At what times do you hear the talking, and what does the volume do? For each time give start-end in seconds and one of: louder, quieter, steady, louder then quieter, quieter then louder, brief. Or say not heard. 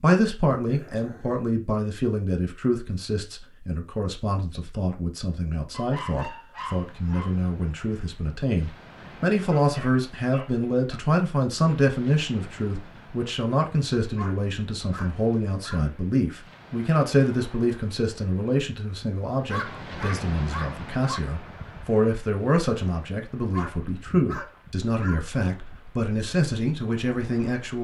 0.0-27.7 steady.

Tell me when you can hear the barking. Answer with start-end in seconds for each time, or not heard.
0.7-1.4, 5.7-7.3, 9.4-11.0, 14.2-15.8, 19.4-21.2, 23.5-25.2.